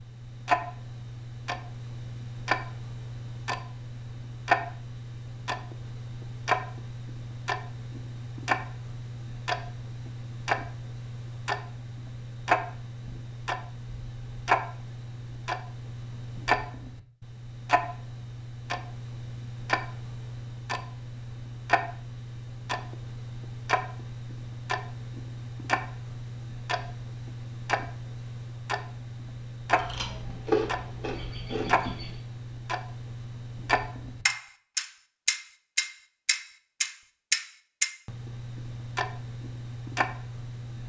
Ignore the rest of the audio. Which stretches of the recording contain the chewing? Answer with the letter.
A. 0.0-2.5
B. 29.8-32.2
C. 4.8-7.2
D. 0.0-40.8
B.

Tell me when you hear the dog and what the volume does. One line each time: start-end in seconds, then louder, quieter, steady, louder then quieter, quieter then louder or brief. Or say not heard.
not heard.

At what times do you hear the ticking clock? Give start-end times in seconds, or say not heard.
0.0-40.8.